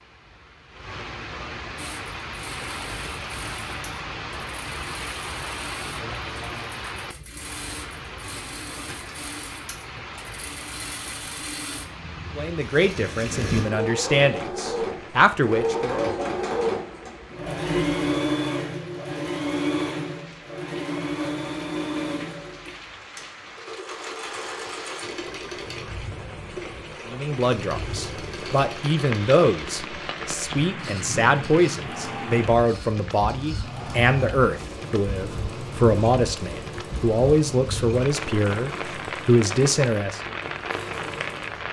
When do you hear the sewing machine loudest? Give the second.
18 s.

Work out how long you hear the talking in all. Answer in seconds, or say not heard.
17 s.